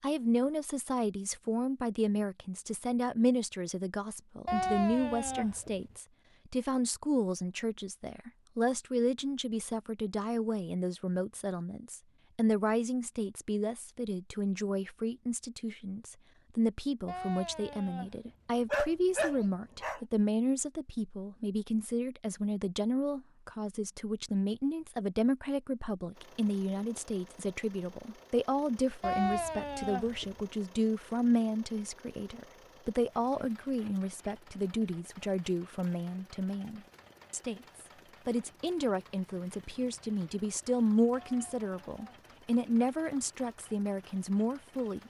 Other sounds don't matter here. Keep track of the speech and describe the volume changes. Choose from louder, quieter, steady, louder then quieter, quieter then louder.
steady.